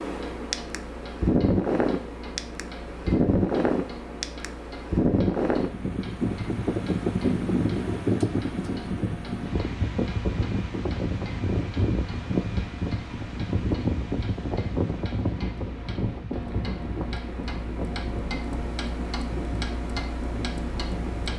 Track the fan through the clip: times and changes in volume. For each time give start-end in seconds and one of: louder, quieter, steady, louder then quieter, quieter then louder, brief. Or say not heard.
0.0-21.3 quieter.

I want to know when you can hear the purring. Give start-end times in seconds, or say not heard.
not heard.